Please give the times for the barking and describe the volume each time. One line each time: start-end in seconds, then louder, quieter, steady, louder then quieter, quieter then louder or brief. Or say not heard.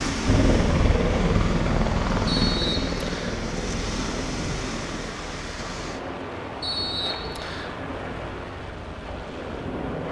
not heard.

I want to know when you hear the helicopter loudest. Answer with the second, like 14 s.
1 s.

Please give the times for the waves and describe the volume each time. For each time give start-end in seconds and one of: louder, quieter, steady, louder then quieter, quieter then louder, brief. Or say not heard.
0.0-10.0 steady.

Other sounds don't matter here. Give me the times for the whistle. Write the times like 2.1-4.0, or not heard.
2.2-3.4, 6.6-7.8.